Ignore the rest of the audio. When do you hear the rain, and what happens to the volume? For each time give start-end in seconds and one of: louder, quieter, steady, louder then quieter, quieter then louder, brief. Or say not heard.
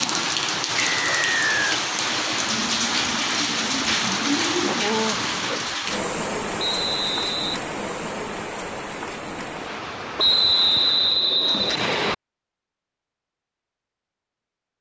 0.0-11.4 quieter.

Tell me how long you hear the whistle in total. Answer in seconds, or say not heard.
4 s.